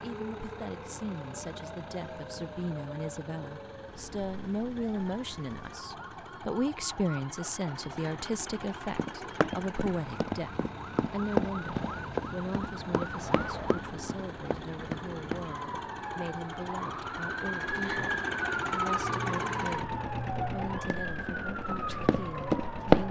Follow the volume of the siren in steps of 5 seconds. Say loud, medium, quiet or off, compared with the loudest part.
medium, medium, medium, loud, loud.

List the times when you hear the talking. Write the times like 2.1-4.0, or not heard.
0.0-23.0.